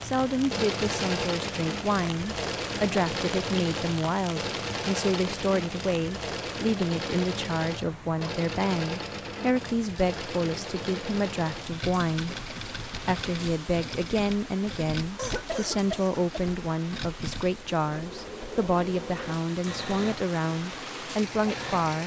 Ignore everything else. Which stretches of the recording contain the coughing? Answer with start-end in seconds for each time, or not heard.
15.2-16.5.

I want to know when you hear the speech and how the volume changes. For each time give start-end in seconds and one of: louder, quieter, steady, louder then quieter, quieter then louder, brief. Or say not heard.
0.0-22.0 steady.